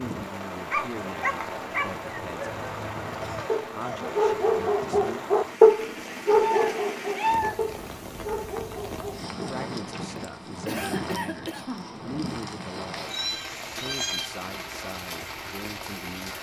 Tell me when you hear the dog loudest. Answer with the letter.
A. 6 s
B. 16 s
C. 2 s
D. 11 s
A.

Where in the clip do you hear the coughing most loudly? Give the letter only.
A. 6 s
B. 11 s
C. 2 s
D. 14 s
B.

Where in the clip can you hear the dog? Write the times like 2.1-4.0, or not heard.
0.7-10.2.